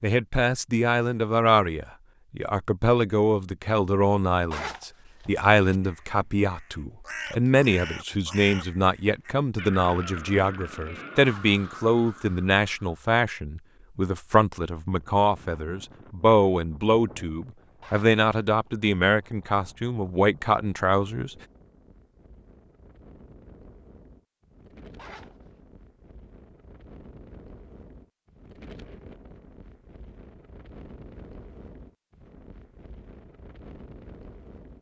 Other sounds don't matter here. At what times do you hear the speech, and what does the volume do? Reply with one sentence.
You can hear the speech from 0.0 to 21.4 s, at a steady volume.